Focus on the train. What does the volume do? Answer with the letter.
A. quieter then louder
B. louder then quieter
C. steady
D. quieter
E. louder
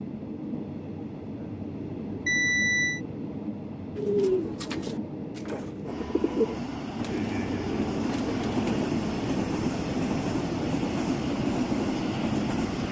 E.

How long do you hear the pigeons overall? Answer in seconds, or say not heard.
5 s.